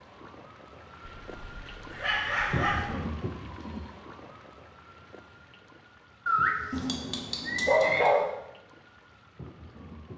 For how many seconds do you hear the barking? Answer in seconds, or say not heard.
4 s.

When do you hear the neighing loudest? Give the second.
8 s.